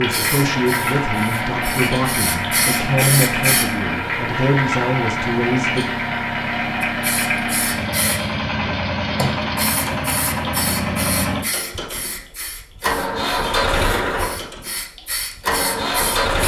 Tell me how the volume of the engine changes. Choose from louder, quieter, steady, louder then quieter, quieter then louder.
steady.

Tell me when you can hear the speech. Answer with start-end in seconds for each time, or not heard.
0.0-5.8.